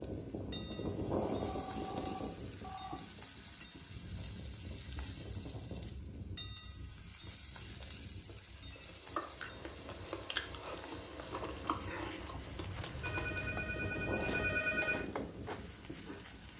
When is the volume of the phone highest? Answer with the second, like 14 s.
15 s.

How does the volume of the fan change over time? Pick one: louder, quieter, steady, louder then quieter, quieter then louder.
quieter then louder.